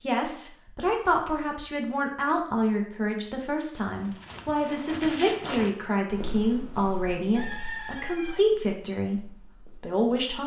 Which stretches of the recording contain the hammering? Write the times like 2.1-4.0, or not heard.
not heard.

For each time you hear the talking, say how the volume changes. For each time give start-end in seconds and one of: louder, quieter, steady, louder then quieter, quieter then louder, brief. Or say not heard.
0.0-10.4 steady.